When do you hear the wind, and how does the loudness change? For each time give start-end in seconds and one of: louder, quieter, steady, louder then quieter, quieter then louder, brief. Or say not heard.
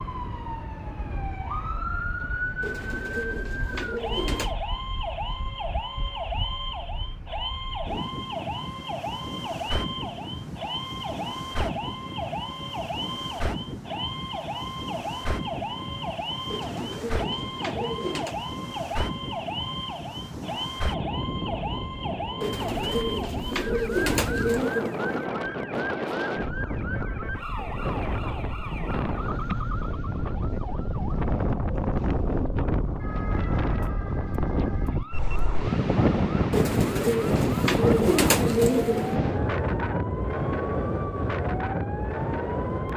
0.0-42.9 louder.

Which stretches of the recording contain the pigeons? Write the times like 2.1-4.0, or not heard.
2.6-4.5, 16.4-18.4, 22.4-25.3, 36.5-39.2.